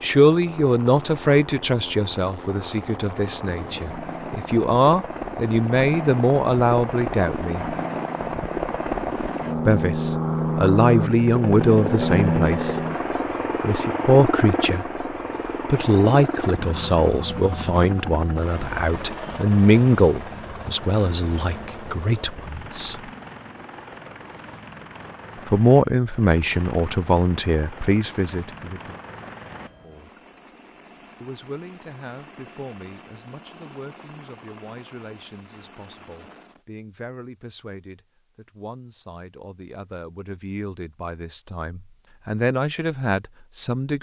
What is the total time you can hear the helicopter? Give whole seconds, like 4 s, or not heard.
37 s.